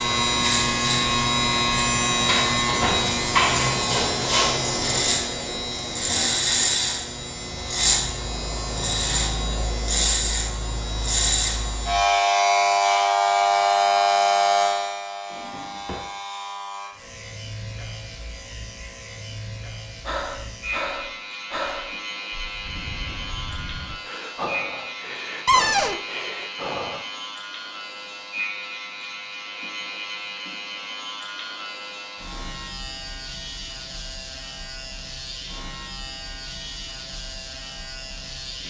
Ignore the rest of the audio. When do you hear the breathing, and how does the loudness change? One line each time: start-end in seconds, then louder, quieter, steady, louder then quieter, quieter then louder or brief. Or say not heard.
20.1-27.1 quieter then louder.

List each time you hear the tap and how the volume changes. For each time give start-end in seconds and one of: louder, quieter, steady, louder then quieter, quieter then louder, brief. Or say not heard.
not heard.